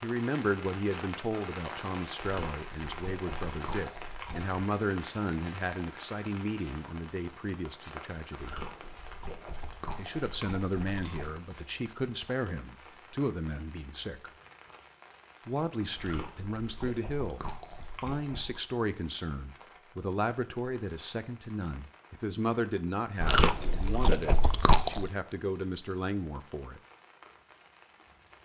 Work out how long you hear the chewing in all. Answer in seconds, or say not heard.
10 s.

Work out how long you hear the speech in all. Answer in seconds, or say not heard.
24 s.